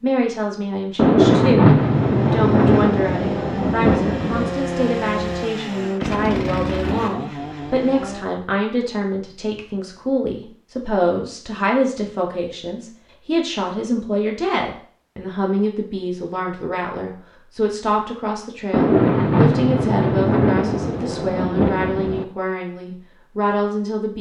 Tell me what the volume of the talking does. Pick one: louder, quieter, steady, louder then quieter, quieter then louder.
steady.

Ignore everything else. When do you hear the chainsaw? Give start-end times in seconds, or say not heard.
1.8-8.2.